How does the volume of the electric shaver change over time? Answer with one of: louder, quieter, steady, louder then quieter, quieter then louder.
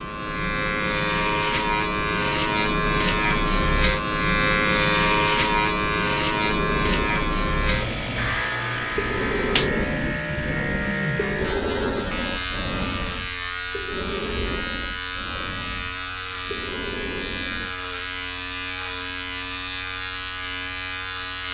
quieter.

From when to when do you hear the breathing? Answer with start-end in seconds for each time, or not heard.
6.5-17.9.